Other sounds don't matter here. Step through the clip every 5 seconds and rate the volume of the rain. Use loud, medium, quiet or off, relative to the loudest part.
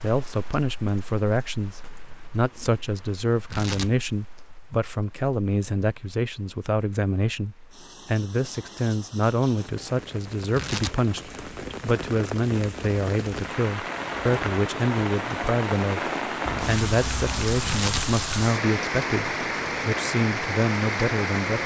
quiet, quiet, medium, loud, loud.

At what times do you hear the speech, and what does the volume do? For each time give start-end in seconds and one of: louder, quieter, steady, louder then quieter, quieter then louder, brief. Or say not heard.
0.0-21.6 steady.